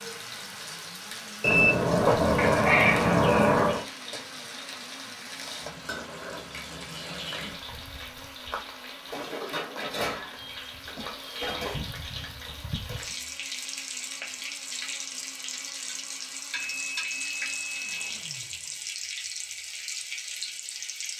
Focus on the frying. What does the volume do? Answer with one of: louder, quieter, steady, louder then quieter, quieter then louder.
louder.